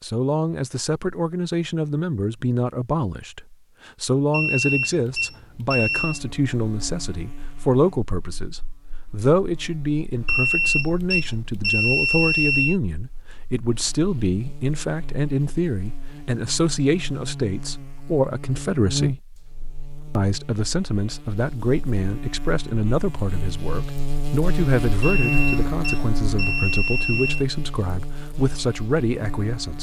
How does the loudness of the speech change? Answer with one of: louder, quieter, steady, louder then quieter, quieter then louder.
steady.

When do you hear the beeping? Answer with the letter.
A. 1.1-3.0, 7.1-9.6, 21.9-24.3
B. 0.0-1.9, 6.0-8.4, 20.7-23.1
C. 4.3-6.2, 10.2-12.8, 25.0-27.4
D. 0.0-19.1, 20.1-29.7
C.